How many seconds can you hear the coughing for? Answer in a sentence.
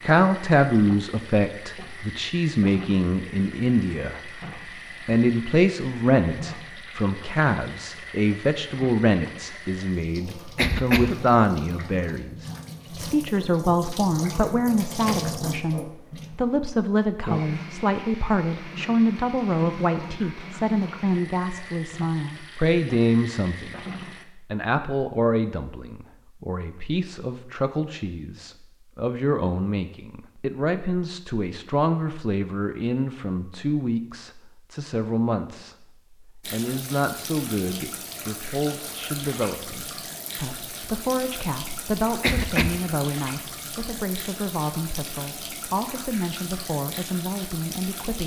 You can hear the coughing for 2 seconds altogether.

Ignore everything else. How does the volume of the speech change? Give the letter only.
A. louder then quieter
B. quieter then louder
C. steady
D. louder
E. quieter
E.